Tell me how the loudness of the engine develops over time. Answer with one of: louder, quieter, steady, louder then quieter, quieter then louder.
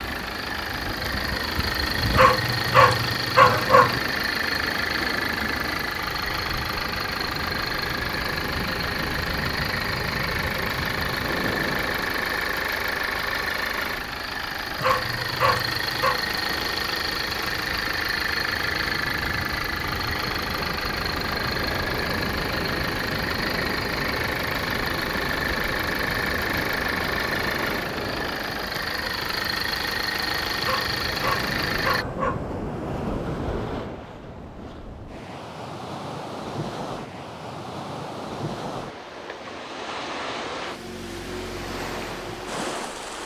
steady.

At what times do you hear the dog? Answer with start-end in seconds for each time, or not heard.
2.1-4.0, 14.8-16.2, 30.6-32.5.